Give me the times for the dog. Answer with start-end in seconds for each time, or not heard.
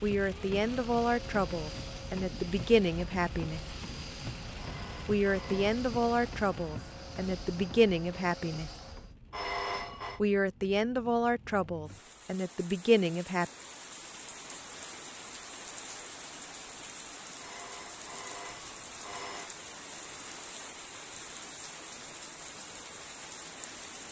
not heard.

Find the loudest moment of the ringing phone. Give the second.
10 s.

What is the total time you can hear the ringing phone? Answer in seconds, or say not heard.
4 s.